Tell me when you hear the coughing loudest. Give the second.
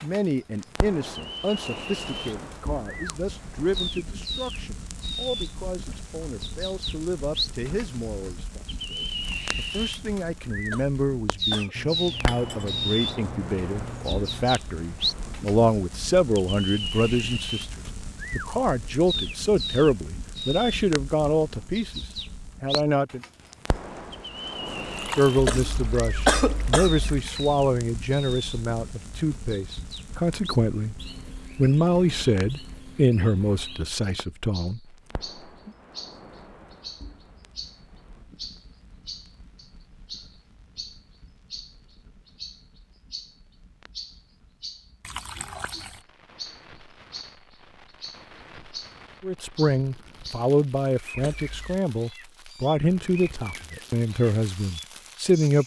26 s.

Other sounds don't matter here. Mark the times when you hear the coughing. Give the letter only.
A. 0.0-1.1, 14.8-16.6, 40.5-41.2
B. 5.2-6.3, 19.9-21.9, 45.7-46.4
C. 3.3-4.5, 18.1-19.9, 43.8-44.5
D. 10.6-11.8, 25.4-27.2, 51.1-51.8
D.